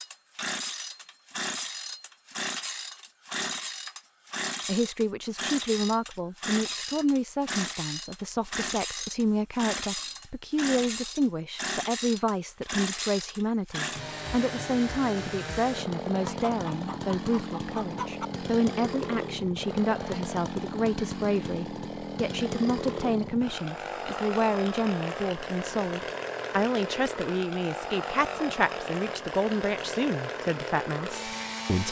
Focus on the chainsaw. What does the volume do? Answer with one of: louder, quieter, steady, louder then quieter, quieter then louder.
steady.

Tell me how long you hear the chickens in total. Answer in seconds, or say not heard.
2 s.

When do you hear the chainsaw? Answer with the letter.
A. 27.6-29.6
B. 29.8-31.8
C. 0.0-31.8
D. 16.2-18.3
C.